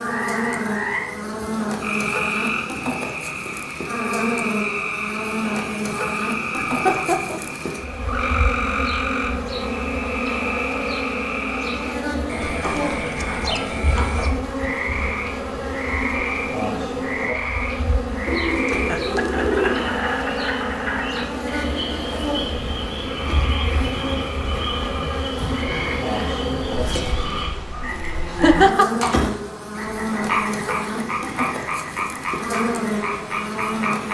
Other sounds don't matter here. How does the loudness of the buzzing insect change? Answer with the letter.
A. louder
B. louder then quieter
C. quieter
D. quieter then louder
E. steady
E.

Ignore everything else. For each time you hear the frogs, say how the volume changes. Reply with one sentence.
You can hear the frogs from 0.0 to 34.0 s, at a steady volume.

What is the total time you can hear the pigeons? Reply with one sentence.
The pigeons can be heard for 3 seconds in total.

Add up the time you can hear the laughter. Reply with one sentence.
The laughter can be heard for 3 seconds in total.